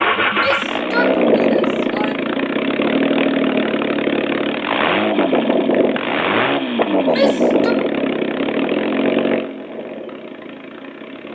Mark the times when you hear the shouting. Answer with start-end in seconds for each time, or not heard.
0.3-2.3, 7.0-7.8.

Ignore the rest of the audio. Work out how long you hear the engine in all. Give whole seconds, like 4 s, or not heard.
11 s.